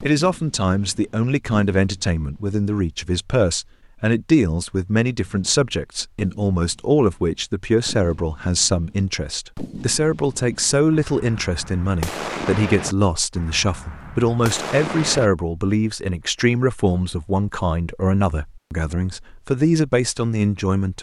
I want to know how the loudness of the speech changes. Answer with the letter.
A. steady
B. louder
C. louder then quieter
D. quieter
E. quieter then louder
A.